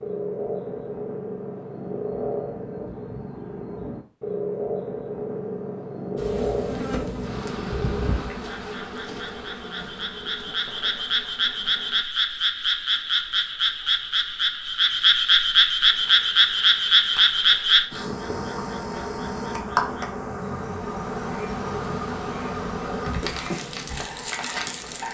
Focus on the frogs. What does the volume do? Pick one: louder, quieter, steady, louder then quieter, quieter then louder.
louder then quieter.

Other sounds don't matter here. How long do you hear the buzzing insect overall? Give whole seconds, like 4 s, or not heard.
15 s.